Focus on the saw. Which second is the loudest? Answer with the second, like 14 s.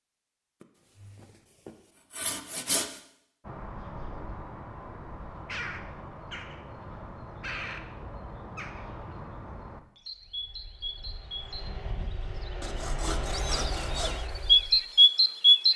3 s.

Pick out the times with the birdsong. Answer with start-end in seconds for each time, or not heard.
3.5-15.7.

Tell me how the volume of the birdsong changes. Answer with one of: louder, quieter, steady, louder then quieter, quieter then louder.
louder.